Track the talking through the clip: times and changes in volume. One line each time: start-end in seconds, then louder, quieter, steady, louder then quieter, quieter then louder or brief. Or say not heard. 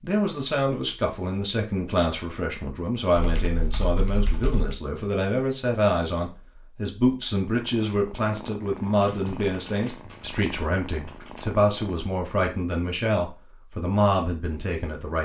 0.0-15.2 steady.